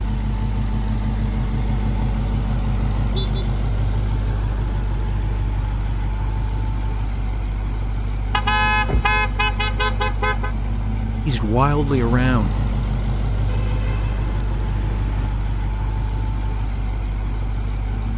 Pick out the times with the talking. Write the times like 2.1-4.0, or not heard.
11.2-12.6.